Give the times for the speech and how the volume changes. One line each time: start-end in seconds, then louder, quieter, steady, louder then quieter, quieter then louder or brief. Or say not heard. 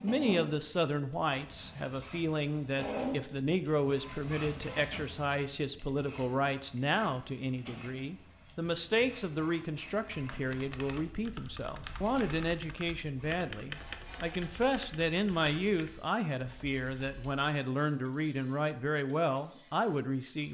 0.0-20.4 steady.